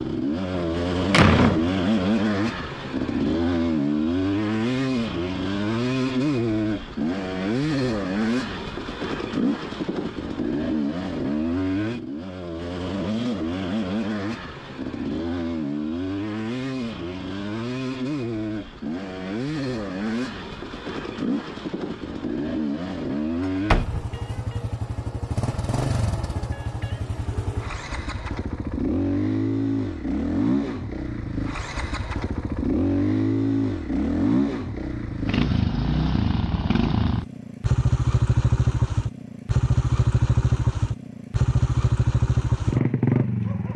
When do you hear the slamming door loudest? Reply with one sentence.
The loudest moment of the slamming door is at 1 second.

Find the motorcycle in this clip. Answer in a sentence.
The motorcycle can be heard from 0.0 to 43.7 s.